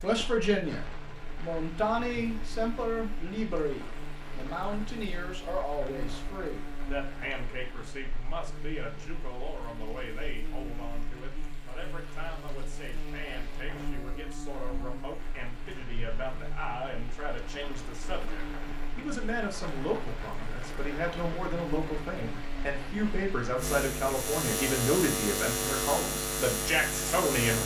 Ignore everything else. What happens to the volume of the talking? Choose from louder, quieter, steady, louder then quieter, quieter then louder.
quieter then louder.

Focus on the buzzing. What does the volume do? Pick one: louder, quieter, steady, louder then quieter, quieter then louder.
louder.